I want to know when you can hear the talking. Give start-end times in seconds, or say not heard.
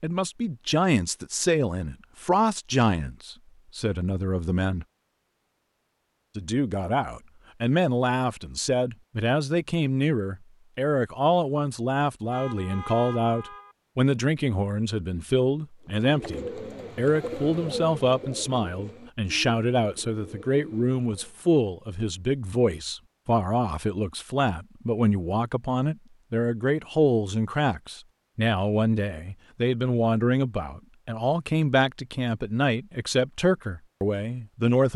0.0-4.8, 6.3-34.9.